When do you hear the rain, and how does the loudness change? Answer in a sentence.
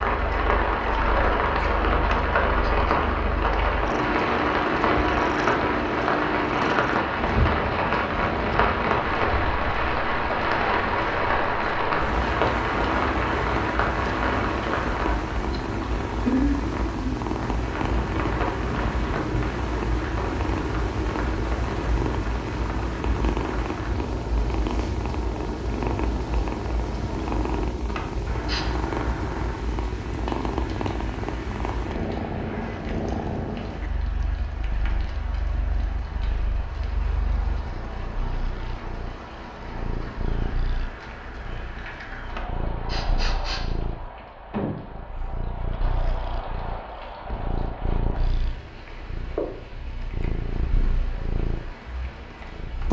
The rain can be heard from 0.0 to 52.8 s, getting quieter.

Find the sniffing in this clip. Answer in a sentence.
You can hear the sniffing from 2.0 to 2.7 s, from 27.9 to 28.6 s and from 42.2 to 43.6 s.